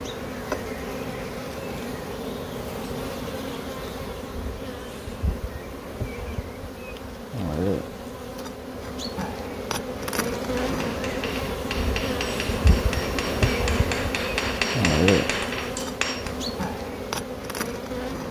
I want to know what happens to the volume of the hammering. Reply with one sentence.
The volume of the hammering goes up.